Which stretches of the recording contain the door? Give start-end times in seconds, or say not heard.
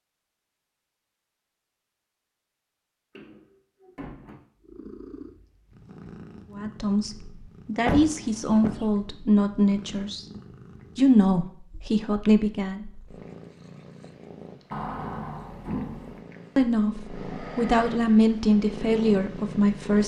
3.1-4.3, 7.8-8.8, 14.7-16.2.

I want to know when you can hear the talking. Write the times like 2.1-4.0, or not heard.
6.5-10.2, 10.9-12.8, 16.6-20.0.